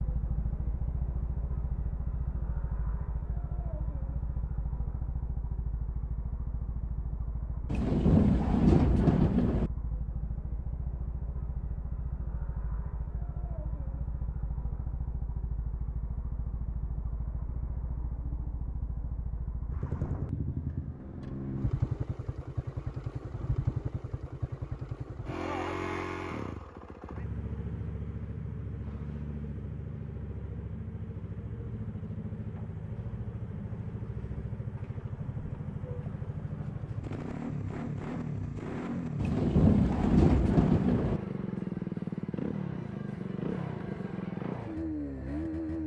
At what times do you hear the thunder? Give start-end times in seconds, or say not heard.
7.7-9.7, 39.2-41.2.